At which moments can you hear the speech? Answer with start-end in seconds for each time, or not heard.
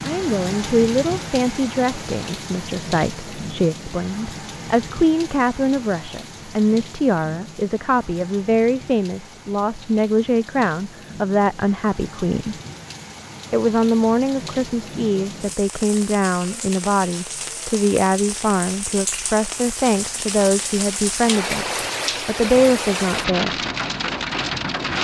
0.0-12.6, 13.5-21.6, 22.2-23.6.